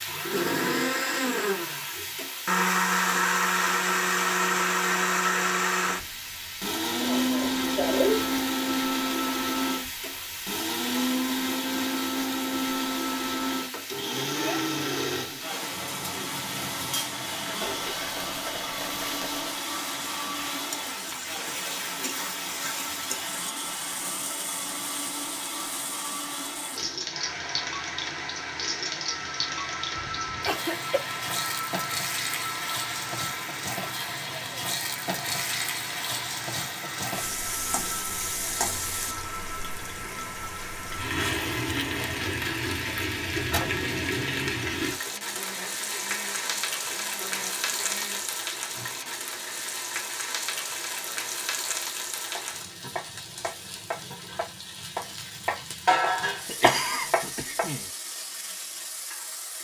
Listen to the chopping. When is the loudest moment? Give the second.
57 s.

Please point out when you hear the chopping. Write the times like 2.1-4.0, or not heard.
52.4-57.7.